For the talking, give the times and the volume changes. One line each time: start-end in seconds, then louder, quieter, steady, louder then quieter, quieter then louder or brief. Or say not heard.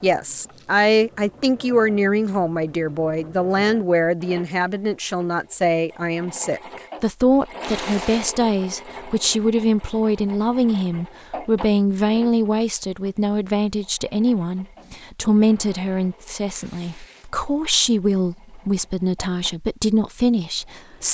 0.0-21.0 steady.